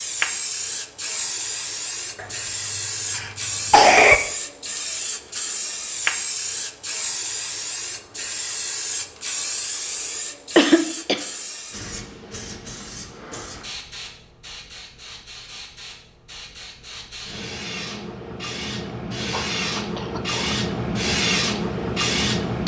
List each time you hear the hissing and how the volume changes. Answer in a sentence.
You can hear the hissing from 0.0 to 22.6 s, getting quieter then louder.